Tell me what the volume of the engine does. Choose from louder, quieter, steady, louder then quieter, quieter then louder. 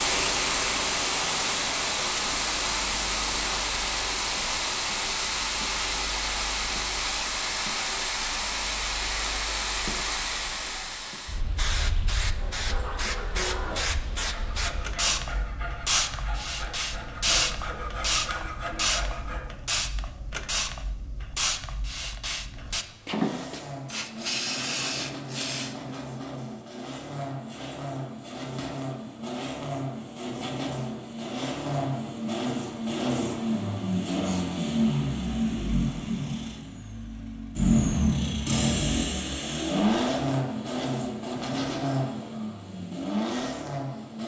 louder.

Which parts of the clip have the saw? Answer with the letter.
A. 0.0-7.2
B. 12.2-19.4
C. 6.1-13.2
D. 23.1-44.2
B.